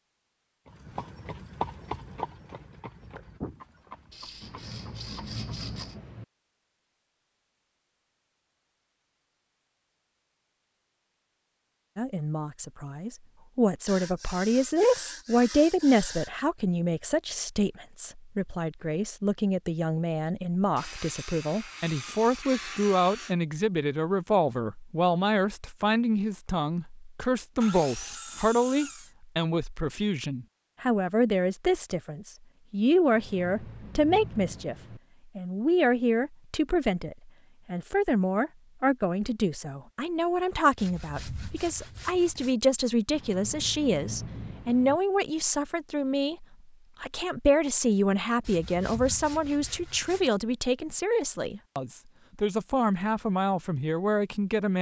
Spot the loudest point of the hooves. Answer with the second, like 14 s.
2 s.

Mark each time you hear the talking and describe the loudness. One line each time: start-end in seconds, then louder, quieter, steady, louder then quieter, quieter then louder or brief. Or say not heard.
11.9-54.7 steady.